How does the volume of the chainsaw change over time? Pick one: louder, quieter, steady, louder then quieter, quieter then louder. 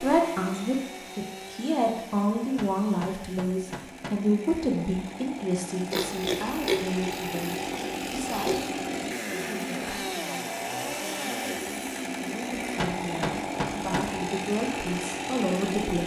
louder.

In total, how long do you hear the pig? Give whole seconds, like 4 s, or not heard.
3 s.